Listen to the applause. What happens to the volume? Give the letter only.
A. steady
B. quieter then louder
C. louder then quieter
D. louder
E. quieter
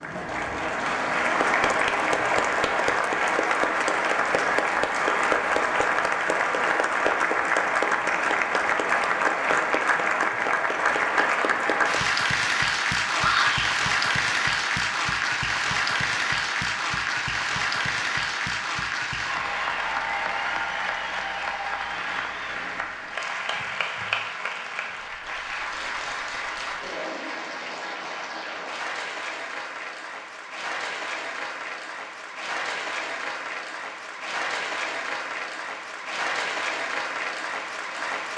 E.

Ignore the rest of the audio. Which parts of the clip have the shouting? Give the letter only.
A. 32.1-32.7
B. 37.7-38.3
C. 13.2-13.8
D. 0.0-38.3
C.